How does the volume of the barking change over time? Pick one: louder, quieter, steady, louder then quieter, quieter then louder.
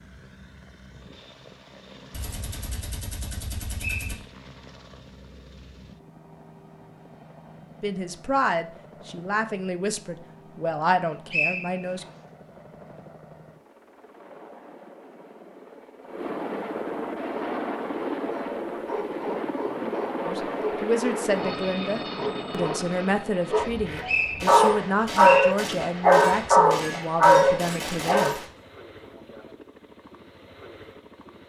louder.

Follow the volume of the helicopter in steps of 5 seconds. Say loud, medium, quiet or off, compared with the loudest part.
quiet, quiet, quiet, loud, loud, quiet, quiet.